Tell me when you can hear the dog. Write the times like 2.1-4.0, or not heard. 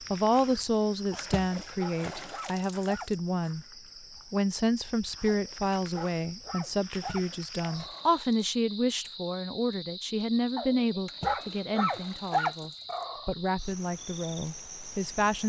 1.1-3.1, 5.2-8.2, 10.6-13.3.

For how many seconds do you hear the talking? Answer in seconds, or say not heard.
15 s.